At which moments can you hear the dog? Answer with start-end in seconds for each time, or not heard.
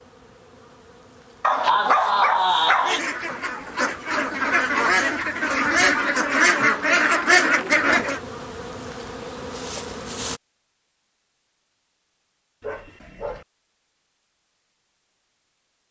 1.4-3.0, 12.6-13.4.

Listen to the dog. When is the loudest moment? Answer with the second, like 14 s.
2 s.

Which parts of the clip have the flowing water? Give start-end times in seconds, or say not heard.
not heard.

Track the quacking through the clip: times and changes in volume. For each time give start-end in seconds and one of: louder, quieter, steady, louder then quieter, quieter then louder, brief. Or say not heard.
2.8-8.2 louder.